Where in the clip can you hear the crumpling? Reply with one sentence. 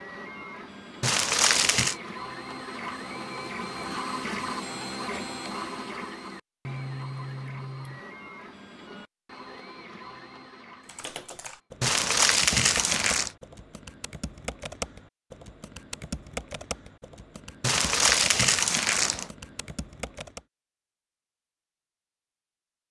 You can hear the crumpling from 1.0 to 1.9 s, from 11.8 to 13.3 s and from 17.6 to 19.3 s.